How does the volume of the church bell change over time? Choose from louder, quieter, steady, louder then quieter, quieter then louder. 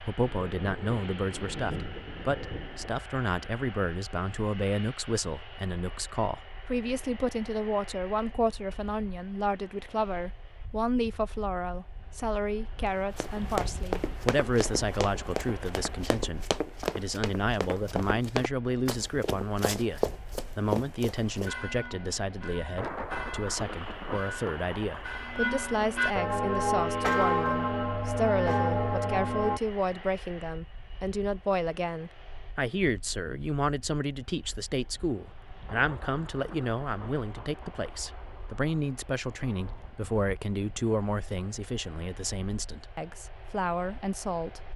louder.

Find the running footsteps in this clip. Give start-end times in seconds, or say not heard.
12.8-21.5.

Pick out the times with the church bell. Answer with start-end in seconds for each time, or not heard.
21.3-29.6.